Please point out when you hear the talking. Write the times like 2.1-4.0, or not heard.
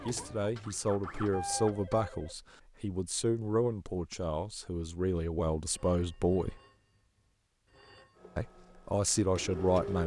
0.0-6.6, 8.3-10.0.